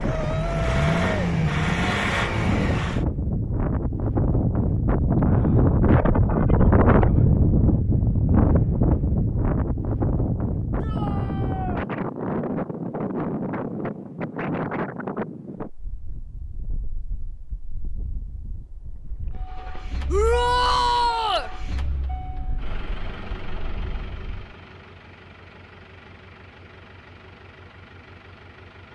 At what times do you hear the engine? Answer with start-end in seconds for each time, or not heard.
0.0-3.0, 19.4-28.9.